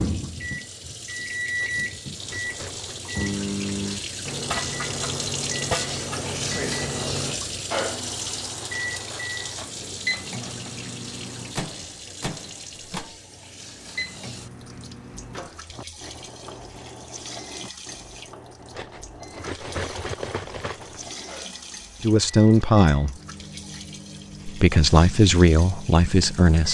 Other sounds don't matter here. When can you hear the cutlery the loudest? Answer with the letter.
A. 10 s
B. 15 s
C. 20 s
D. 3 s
C.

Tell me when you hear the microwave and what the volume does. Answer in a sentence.
The microwave can be heard from 0.0 to 26.6 s, getting quieter.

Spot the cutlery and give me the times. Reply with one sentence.
You can hear the cutlery from 1.6 to 3.0 s, from 8.9 to 10.8 s and from 18.7 to 21.1 s.